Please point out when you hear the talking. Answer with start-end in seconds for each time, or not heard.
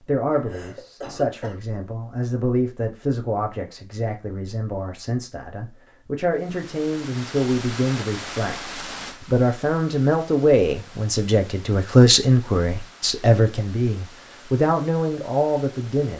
0.0-16.1.